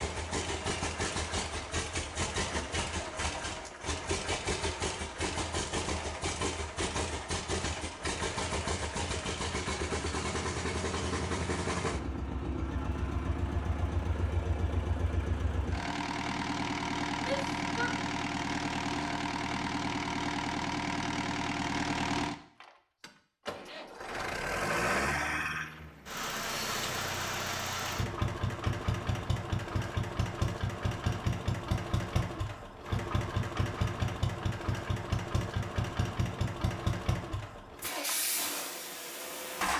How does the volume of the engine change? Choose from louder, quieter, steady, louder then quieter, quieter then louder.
steady.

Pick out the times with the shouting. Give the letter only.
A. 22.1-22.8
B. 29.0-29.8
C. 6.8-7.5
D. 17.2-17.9
D.